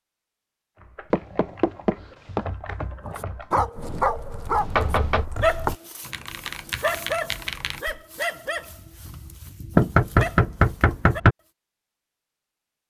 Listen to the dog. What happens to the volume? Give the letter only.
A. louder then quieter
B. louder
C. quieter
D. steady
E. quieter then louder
C.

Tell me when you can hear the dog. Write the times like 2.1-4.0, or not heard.
3.0-11.2.